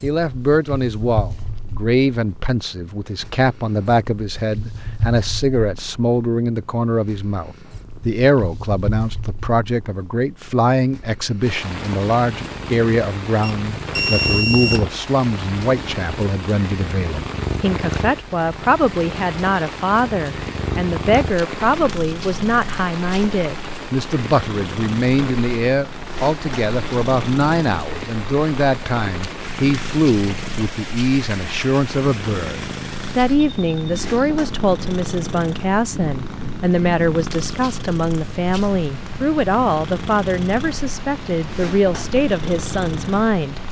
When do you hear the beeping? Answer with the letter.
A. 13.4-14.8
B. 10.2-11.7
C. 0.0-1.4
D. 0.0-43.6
A.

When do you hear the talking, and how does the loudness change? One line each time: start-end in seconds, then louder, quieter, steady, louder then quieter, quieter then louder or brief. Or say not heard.
0.0-43.6 steady.